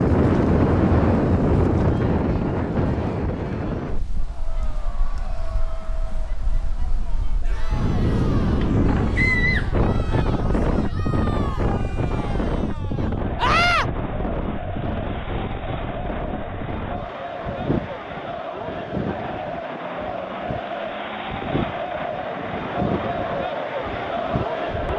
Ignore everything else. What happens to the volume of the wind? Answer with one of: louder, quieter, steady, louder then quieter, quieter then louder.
quieter.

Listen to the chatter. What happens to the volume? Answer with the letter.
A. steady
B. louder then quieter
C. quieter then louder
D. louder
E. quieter
D.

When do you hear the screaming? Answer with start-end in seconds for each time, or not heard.
9.2-10.2, 13.4-13.8.